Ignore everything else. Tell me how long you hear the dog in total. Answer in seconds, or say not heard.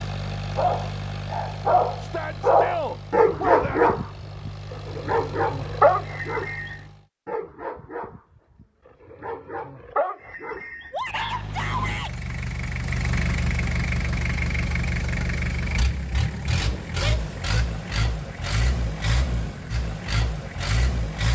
11 s.